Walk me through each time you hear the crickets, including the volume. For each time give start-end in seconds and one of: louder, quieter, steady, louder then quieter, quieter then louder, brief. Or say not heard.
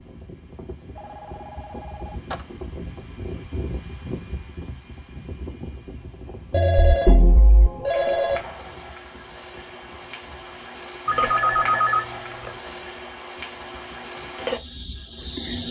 0.0-15.6 louder.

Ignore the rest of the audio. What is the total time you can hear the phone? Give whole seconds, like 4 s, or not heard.
5 s.